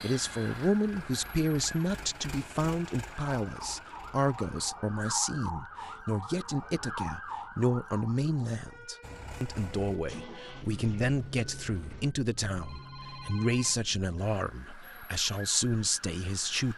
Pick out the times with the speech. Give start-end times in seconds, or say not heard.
0.0-16.7.